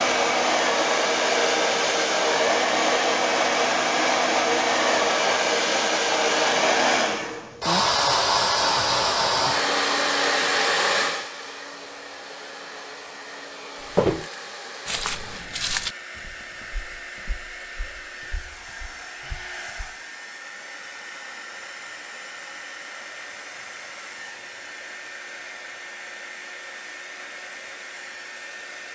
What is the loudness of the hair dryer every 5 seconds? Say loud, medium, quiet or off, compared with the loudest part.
loud, loud, medium, quiet, quiet, quiet.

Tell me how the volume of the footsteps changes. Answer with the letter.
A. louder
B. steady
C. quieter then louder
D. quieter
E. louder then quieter
D.